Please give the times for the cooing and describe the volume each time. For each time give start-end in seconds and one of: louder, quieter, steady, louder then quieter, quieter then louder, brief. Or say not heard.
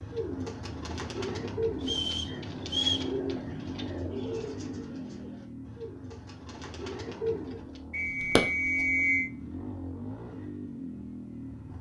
0.0-7.8 quieter then louder.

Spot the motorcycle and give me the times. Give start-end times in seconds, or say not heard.
0.0-11.7.